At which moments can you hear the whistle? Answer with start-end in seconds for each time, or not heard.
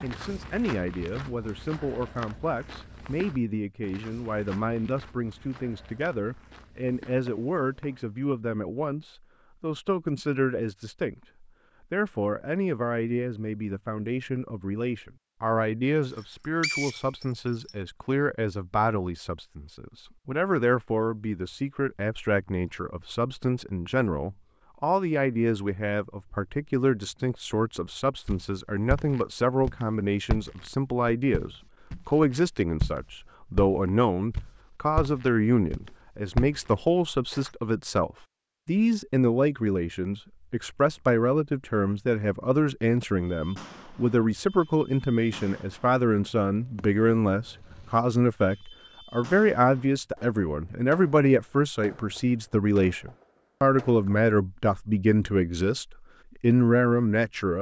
16.1-17.8.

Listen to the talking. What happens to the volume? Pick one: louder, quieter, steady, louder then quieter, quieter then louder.
louder.